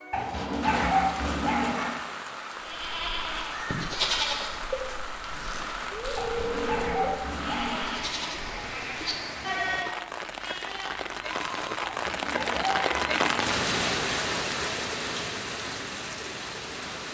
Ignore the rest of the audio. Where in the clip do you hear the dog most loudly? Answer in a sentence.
The loudest moment of the dog is at 1 second.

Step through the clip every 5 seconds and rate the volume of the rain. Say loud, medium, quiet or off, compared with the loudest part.
medium, medium, loud, medium.